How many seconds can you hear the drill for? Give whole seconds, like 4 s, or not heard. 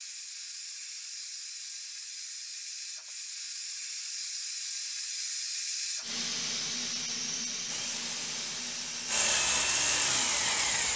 3 s.